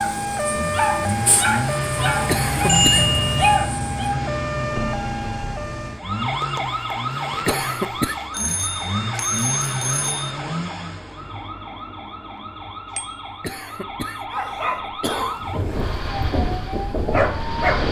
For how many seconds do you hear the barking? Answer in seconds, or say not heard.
8 s.